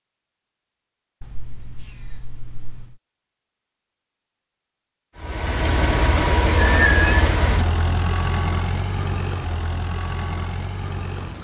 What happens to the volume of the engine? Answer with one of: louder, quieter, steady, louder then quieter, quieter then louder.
quieter.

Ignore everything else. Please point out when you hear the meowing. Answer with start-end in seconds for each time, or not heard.
1.2-3.0, 6.8-7.7.